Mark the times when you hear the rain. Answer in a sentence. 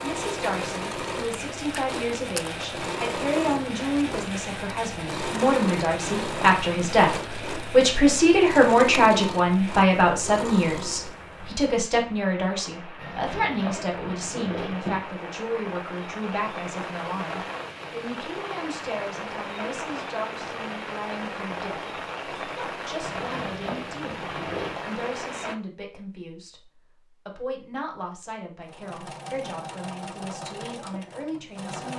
You can hear the rain from 0.0 to 25.6 s.